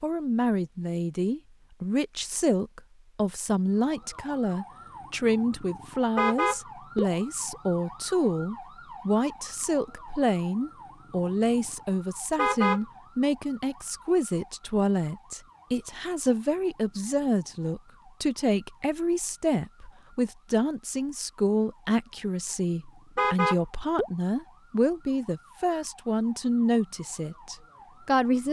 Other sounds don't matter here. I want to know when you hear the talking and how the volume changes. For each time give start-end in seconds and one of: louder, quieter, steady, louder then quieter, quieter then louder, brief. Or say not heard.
0.0-28.4 steady.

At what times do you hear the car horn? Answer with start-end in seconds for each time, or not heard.
6.2-7.1, 12.3-12.8, 23.1-24.1.